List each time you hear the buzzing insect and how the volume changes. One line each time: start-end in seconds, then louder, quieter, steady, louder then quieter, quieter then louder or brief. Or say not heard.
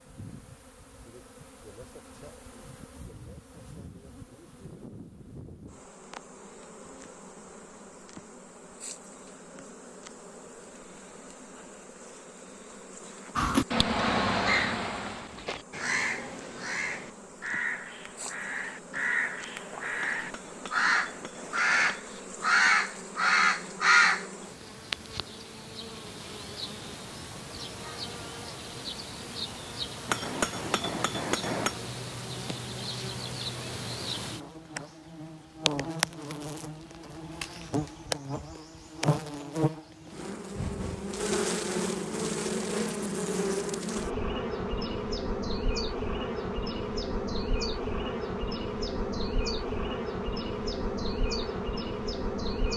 0.0-52.7 louder.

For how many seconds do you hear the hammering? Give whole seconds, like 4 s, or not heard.
4 s.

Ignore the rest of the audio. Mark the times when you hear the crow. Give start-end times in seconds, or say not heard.
13.3-24.2.